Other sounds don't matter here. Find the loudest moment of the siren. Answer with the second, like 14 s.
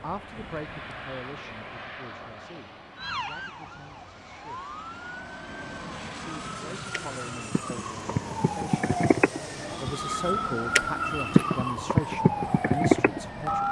12 s.